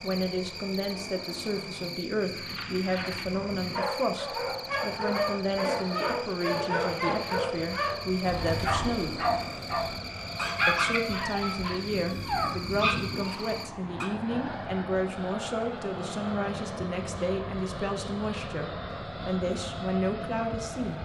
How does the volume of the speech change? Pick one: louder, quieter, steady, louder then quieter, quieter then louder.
steady.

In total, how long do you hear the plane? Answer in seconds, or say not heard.
21 s.